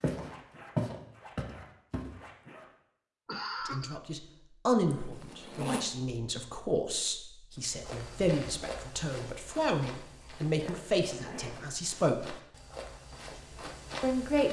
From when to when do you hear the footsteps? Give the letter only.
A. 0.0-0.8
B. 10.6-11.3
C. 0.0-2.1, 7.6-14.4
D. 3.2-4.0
C.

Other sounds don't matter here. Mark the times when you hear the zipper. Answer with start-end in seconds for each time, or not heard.
0.1-2.6, 4.9-5.8, 10.0-11.8.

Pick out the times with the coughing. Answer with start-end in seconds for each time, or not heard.
3.2-4.0.